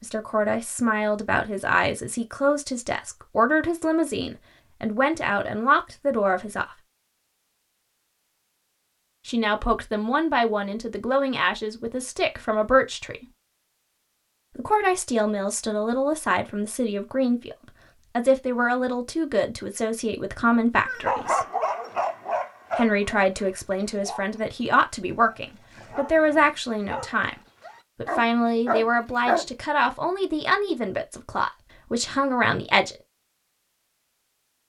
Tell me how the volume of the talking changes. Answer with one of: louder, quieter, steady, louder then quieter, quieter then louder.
steady.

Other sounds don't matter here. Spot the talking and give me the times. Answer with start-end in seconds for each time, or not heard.
0.0-6.8, 9.2-13.2, 14.6-21.4, 22.8-27.4, 27.9-33.0.